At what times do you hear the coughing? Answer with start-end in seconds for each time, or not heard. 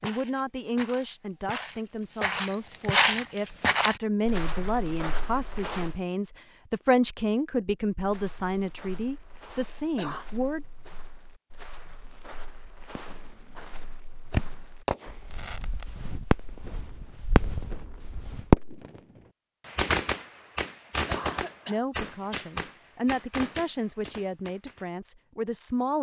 9.8-10.2, 20.6-21.9.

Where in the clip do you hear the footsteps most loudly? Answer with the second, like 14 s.
3 s.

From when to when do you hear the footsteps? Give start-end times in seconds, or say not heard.
0.0-6.0, 8.0-18.6.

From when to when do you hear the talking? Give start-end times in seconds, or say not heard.
0.0-10.7, 21.6-25.9.